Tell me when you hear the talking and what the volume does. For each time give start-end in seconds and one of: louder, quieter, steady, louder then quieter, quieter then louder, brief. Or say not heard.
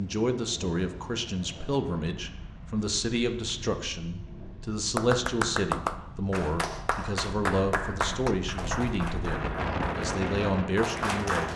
0.0-11.5 steady.